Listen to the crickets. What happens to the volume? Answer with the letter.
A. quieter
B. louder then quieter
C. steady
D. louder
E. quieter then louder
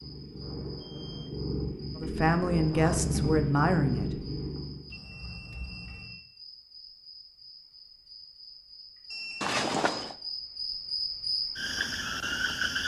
D.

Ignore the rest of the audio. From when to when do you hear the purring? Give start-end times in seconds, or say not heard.
0.0-5.0.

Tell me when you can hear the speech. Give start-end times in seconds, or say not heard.
1.9-4.2.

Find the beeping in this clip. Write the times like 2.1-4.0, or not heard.
0.4-1.3, 4.9-6.2, 9.1-9.6.